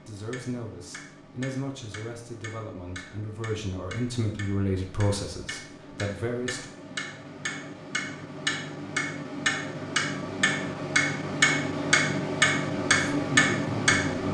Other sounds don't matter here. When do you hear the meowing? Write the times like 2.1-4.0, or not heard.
not heard.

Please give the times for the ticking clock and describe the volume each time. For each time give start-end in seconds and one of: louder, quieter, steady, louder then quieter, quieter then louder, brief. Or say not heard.
0.0-14.2 louder.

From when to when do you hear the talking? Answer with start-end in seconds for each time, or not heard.
0.1-6.7, 13.0-13.9.